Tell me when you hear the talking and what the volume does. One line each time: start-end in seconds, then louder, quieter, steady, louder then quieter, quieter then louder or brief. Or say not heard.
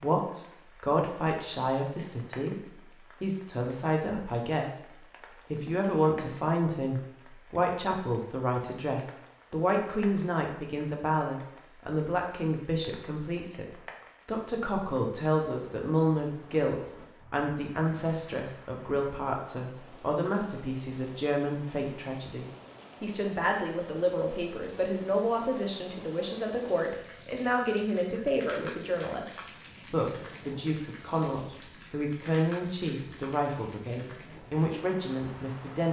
0.0-35.8 steady.